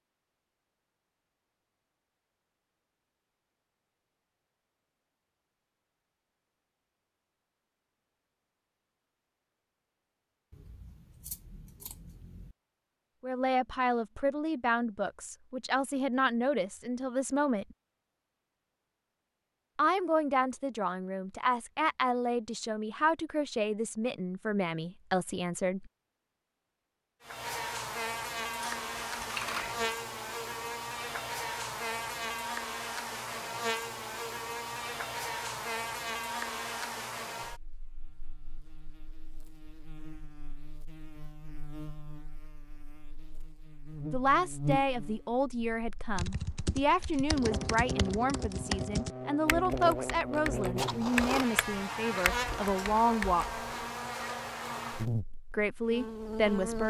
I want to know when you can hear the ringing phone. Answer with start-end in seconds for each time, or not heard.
not heard.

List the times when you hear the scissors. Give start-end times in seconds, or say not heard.
10.5-12.6, 28.6-29.9, 50.8-51.5.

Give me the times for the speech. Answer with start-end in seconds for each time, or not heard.
13.2-17.6, 19.8-25.9, 44.1-53.6, 55.5-56.8.